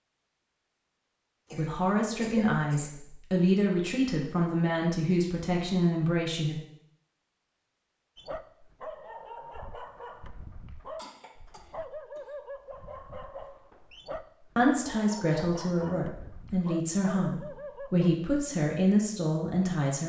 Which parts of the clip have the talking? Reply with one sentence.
The talking can be heard from 1.6 to 6.5 s and from 14.6 to 20.0 s.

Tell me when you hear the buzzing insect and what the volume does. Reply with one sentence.
You can't hear the buzzing insect here.